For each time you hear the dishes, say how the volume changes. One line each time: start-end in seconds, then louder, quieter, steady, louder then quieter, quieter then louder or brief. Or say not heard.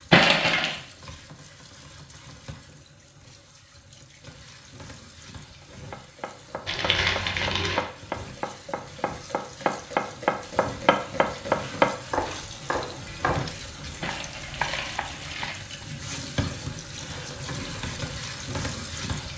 not heard.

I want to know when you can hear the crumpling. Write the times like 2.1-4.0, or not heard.
0.1-0.8, 6.7-7.8, 14.0-15.6.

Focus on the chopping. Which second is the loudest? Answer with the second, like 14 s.
12 s.